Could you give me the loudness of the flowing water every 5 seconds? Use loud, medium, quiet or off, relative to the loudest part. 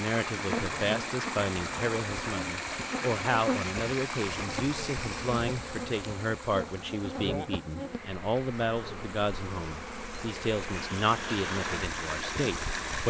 loud, medium, loud.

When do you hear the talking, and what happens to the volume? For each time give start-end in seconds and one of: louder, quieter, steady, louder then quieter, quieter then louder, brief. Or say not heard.
0.0-13.0 steady.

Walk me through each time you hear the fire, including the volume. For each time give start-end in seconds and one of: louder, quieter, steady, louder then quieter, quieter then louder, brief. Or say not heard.
not heard.